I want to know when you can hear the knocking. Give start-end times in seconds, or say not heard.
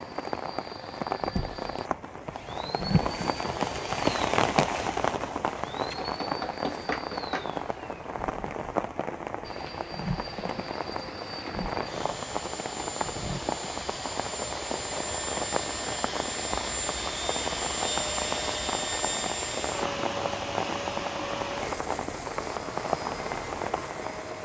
5.8-7.5.